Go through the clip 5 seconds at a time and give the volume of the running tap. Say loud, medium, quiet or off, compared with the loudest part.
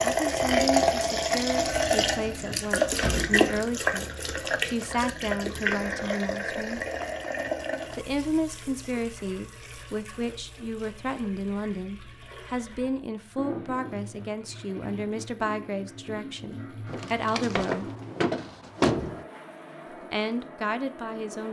loud, medium, quiet, quiet, quiet.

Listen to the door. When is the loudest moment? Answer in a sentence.
The volume of the door peaks at 19 seconds.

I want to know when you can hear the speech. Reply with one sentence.
The speech can be heard from 0.0 to 6.8 s, from 8.0 to 17.9 s and from 20.1 to 21.4 s.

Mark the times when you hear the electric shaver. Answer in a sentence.
The electric shaver can't be heard in this clip.